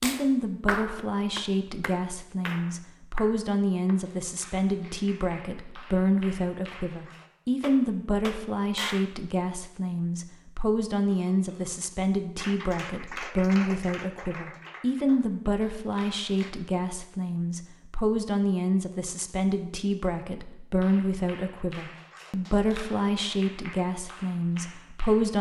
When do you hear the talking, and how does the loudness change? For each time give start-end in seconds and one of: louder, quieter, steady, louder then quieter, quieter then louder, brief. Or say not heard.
0.0-25.3 steady.